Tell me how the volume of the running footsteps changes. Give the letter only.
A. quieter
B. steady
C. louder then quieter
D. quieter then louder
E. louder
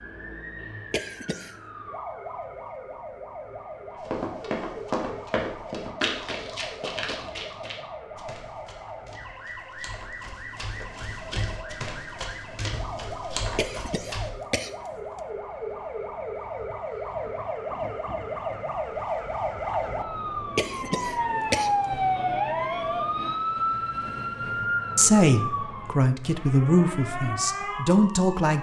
D.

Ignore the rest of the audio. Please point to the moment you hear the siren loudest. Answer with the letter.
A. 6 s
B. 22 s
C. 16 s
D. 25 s
B.